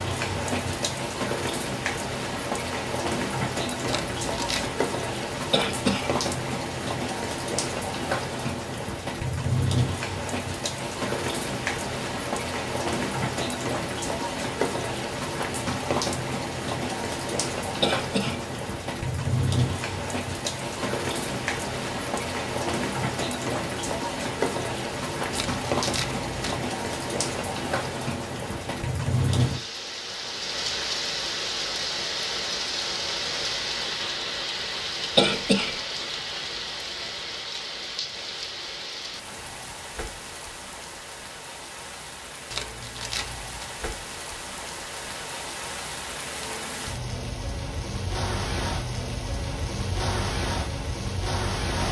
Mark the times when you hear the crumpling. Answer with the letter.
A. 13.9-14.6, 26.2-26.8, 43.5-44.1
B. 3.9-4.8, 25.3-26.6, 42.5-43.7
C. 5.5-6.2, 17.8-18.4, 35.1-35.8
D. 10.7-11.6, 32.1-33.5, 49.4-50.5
B.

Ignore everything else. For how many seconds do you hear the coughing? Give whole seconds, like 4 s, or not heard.
2 s.